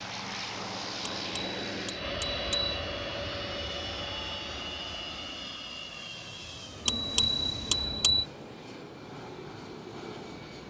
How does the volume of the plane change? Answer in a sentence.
The loudness of the plane goes down.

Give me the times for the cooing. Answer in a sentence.
You can't hear the cooing here.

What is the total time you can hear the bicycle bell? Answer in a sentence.
You can hear the bicycle bell for 3 seconds altogether.